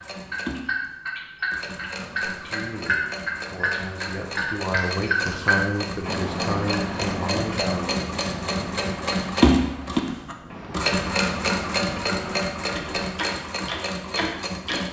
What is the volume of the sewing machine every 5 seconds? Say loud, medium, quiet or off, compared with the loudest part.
medium, loud, loud.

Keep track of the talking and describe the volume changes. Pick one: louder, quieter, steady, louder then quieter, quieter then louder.
louder.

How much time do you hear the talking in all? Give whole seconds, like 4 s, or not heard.
6 s.